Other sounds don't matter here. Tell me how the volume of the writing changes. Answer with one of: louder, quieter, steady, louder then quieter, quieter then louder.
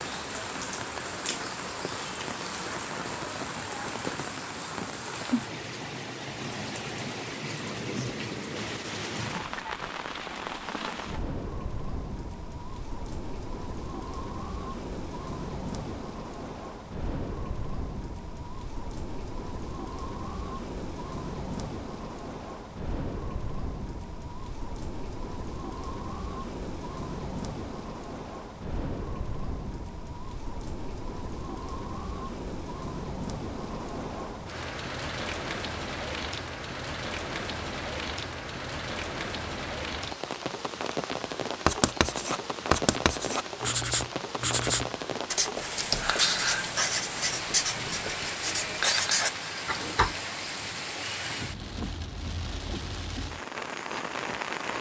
steady.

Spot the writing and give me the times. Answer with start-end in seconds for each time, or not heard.
41.6-50.1.